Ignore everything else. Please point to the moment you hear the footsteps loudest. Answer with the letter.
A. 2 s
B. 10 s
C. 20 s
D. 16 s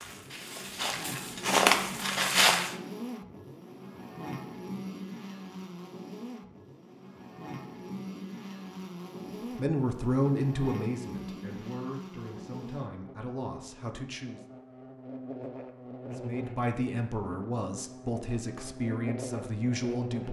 A.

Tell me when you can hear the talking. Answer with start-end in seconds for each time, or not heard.
9.6-14.4, 16.1-20.2.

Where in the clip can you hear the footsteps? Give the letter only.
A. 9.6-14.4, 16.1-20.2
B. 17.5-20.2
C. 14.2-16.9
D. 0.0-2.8
D.